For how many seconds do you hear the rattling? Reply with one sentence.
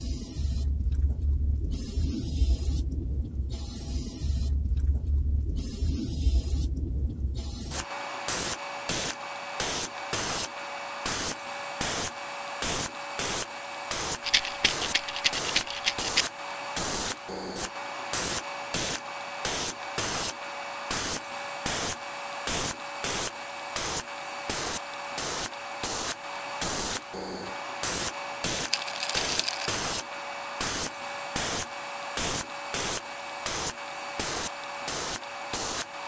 You can hear the rattling for 3 seconds altogether.